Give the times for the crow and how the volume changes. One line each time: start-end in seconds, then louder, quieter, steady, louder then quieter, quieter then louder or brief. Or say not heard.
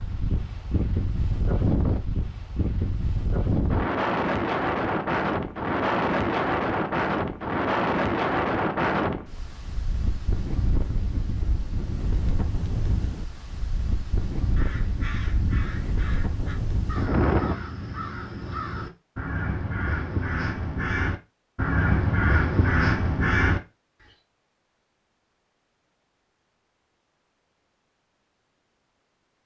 14.6-23.6 louder.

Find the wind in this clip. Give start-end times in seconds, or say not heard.
0.0-17.6.